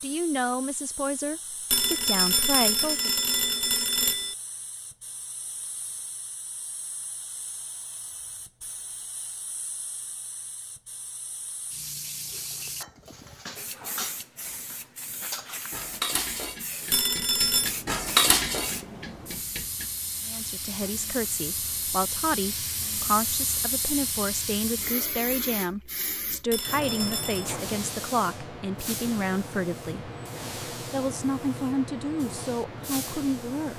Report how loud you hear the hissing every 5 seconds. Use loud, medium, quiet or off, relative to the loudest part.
quiet, quiet, medium, medium, loud, loud, loud.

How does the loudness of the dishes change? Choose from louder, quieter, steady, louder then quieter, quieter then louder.
louder then quieter.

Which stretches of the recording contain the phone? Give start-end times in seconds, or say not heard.
1.7-4.3, 16.9-17.8, 26.5-27.5.